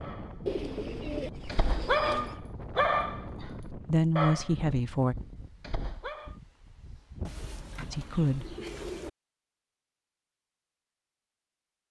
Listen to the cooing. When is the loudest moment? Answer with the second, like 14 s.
1 s.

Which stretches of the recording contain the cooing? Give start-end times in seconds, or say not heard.
0.5-2.4, 7.2-9.1.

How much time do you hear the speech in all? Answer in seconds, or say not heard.
2 s.